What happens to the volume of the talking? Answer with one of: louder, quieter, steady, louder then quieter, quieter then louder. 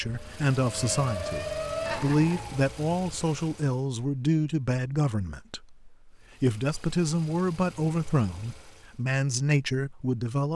steady.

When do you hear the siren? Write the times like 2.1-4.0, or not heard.
0.0-2.7.